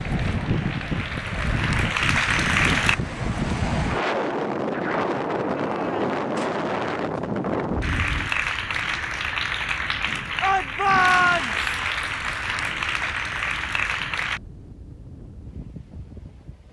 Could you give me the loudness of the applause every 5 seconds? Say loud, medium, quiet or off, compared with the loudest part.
loud, loud, loud, off.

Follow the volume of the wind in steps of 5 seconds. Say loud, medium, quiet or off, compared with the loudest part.
loud, loud, quiet, quiet.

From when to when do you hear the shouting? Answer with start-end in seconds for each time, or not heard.
10.4-11.6.